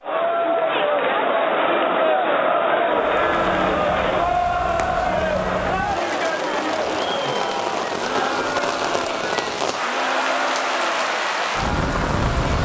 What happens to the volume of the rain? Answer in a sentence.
The volume of the rain goes up.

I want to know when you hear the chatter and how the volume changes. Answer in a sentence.
You can hear the chatter from 0.0 to 12.5 s, getting quieter.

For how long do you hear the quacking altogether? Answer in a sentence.
You can't hear the quacking here.